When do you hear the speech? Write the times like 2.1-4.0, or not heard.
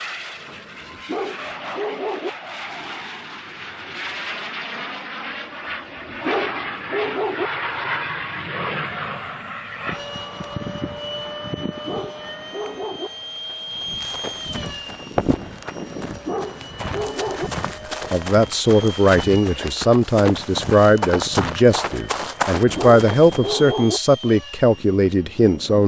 18.1-25.8.